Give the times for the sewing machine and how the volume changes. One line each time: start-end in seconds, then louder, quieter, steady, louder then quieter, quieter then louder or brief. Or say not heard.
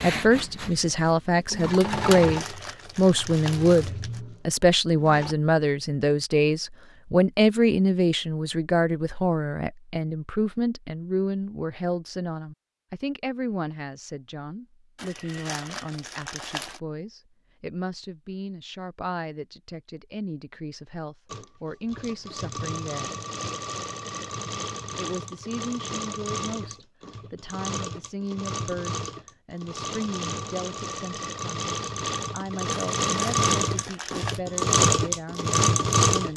0.0-5.3 louder then quieter
21.2-36.3 louder.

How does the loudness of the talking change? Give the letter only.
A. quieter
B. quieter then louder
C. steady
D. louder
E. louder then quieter
A.